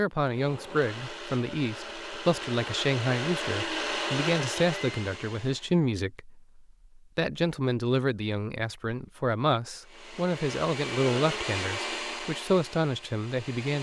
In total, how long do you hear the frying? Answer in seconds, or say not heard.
not heard.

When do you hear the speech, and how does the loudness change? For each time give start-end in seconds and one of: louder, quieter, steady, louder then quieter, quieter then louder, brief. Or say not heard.
0.0-13.7 steady.